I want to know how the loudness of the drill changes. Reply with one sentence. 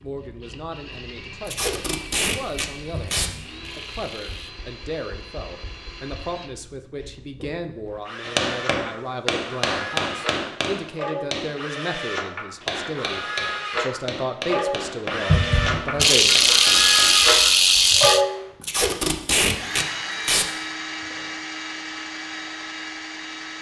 The loudness of the drill goes up, then down.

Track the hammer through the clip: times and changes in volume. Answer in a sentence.
The hammer can be heard from 8.2 to 17.3 s, getting quieter.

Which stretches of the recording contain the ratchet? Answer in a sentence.
The ratchet can be heard from 2.9 to 4.5 s and from 15.3 to 18.2 s.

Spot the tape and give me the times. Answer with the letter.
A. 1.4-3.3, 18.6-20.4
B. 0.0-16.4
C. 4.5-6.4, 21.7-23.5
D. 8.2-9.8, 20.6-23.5
A.